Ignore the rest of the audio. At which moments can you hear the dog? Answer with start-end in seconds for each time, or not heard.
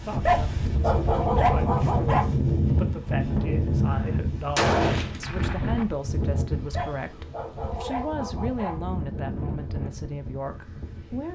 0.2-2.2, 6.8-8.8.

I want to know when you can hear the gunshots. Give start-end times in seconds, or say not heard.
3.9-5.8.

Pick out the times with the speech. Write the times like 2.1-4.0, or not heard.
0.0-11.3.